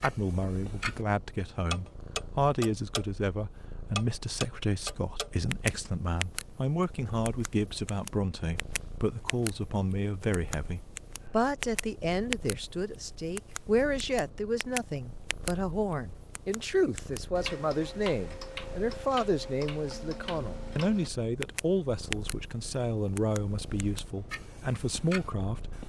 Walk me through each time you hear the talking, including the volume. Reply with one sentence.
The talking can be heard from 0.0 to 25.8 s, at a steady volume.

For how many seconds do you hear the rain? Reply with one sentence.
The rain can't be heard in this clip.